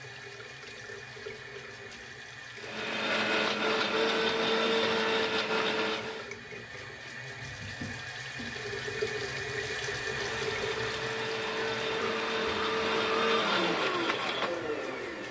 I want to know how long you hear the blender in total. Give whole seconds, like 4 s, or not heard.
9 s.